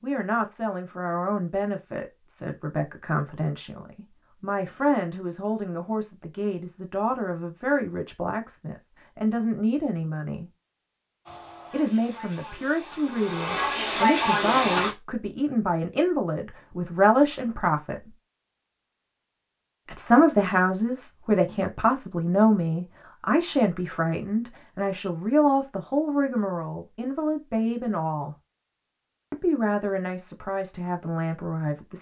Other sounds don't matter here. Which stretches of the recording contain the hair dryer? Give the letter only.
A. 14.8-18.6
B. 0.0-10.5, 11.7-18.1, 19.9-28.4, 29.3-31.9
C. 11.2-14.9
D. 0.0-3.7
C.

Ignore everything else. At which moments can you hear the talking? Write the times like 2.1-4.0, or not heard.
0.0-10.5, 11.7-18.1, 19.9-28.4, 29.3-31.9.